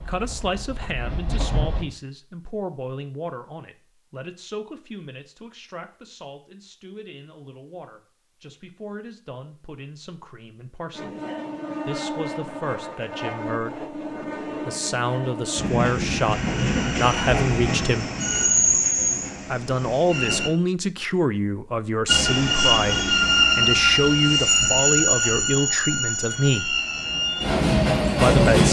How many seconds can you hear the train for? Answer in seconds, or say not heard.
18 s.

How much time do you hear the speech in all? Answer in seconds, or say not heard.
24 s.